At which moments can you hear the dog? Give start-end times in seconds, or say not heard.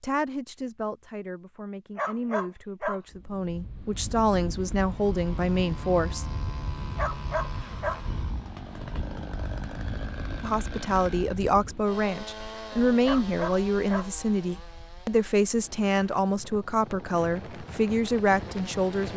1.9-3.0, 7.0-8.0, 13.1-14.1.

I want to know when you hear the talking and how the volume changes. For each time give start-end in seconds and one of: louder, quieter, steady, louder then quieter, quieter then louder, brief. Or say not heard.
0.0-6.2 louder
10.4-19.1 steady.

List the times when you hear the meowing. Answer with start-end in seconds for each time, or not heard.
not heard.